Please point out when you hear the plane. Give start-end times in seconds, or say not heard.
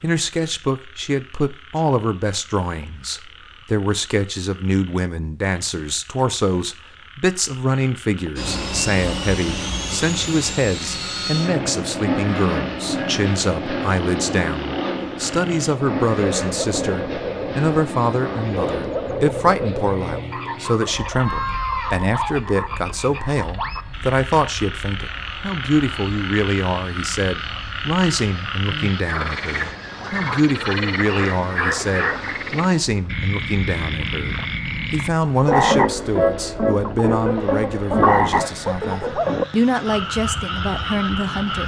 8.3-41.6.